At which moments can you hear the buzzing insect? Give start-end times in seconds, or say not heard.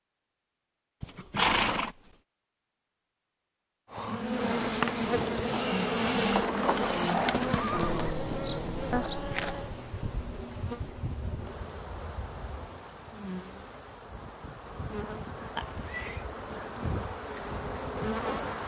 3.9-18.6.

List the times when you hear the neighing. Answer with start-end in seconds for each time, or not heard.
1.0-1.9, 6.3-8.2, 15.6-16.2.